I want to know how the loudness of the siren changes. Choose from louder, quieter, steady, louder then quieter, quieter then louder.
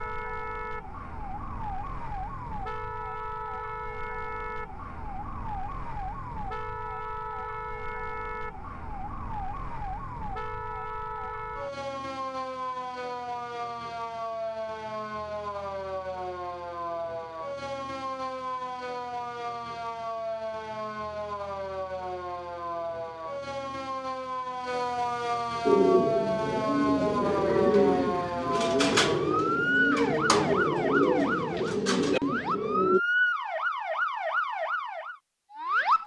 louder.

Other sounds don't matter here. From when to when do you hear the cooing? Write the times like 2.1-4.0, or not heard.
25.6-33.0.